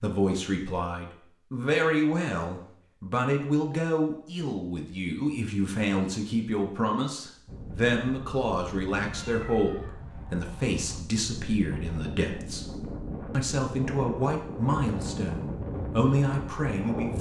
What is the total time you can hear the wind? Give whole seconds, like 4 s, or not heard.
10 s.